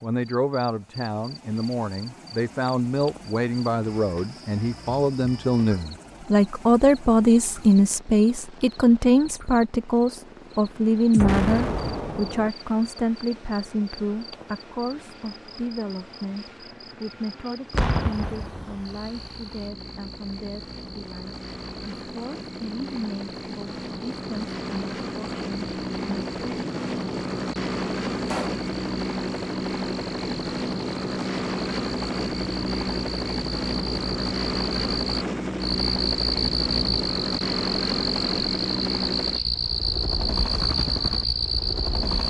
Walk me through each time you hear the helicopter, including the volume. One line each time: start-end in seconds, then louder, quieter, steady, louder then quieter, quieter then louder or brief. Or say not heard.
0.0-42.2 louder.